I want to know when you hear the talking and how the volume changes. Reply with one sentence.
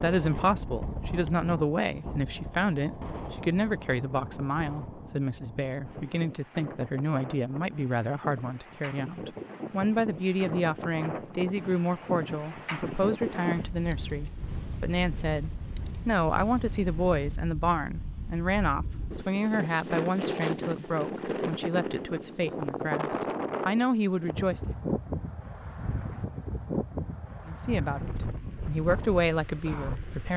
You can hear the talking from 0.0 to 24.7 s, at a steady volume; and briefly from 27.4 to 30.3 s.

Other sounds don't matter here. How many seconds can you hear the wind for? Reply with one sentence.
You can hear the wind for 30 seconds altogether.